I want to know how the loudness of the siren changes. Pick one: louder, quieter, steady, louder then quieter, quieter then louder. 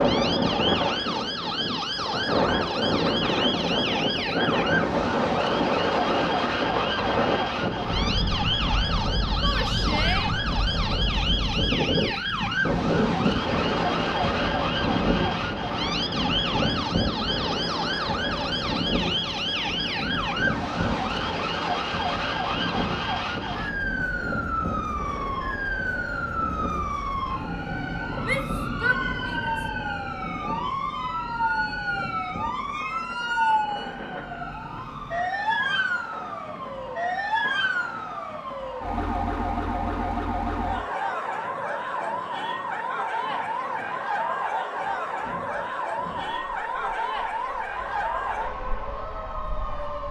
steady.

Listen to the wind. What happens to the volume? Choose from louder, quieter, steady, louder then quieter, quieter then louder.
quieter.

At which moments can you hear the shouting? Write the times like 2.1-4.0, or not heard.
9.4-10.3, 28.2-29.6.